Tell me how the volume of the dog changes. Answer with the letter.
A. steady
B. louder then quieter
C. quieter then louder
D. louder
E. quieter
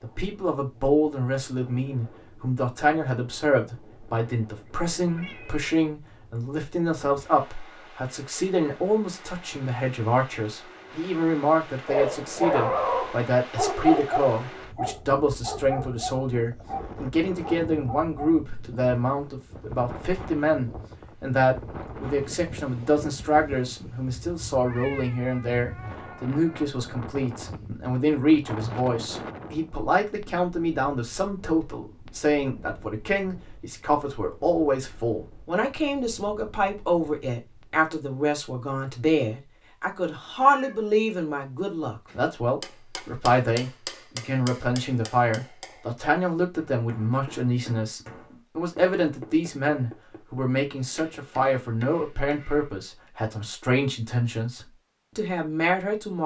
E.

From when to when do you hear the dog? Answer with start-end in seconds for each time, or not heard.
11.8-18.4.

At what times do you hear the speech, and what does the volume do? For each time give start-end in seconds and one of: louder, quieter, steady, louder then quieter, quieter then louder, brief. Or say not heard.
0.0-56.2 steady.